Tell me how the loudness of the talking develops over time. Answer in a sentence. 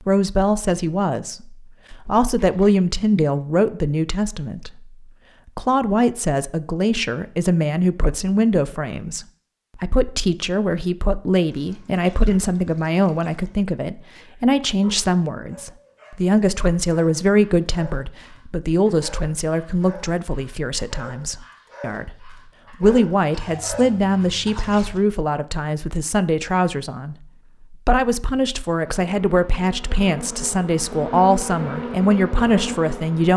The loudness of the talking stays about the same.